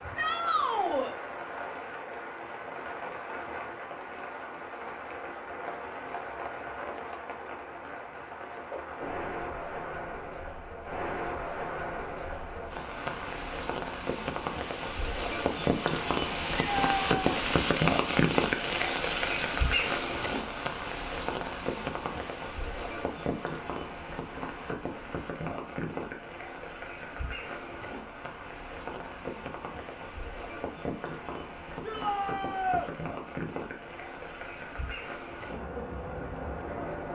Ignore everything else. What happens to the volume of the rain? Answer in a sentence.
The loudness of the rain goes up, then down.